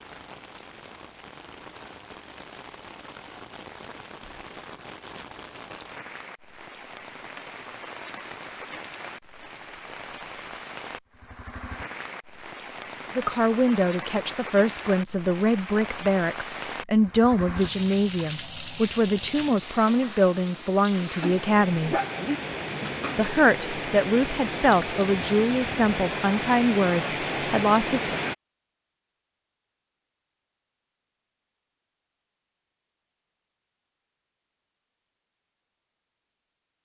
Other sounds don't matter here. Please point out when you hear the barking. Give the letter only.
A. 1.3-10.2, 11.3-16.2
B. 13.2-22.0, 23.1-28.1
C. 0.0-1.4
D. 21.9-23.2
D.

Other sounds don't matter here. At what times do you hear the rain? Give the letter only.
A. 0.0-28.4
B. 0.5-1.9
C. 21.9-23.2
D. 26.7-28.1
A.